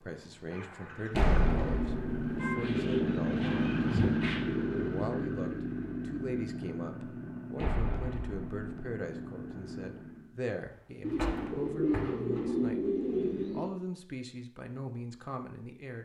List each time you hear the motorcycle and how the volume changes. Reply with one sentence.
The motorcycle can be heard from 0.0 to 10.3 s, getting louder then quieter.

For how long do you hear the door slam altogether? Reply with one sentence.
You can hear the door slam for 3 seconds altogether.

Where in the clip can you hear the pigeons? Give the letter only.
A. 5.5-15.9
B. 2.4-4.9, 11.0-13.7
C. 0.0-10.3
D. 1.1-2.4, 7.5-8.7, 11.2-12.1
B.